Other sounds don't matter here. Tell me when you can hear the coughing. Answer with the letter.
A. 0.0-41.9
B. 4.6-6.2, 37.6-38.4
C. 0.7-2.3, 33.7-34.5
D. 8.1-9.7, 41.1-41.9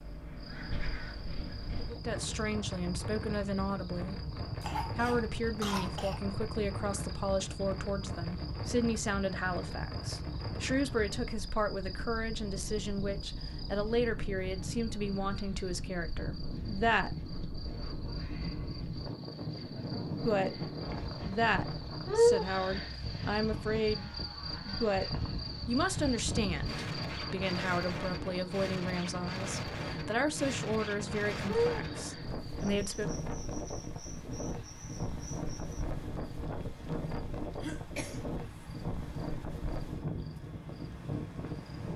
B.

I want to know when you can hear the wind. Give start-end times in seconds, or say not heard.
0.0-41.9.